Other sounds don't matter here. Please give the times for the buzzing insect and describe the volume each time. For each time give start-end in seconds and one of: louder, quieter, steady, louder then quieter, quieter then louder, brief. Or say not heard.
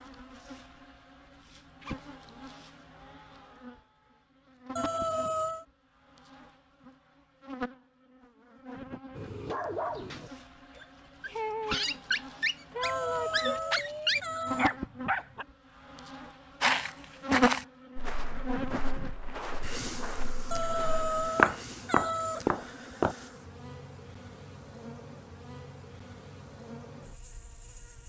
0.0-28.0 louder then quieter.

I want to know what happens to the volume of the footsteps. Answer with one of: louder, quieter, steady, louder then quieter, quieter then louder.
quieter then louder.